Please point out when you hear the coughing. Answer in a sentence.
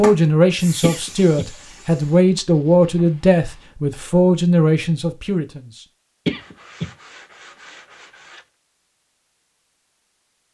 You can hear the coughing from 0.8 to 1.4 s and from 6.2 to 6.9 s.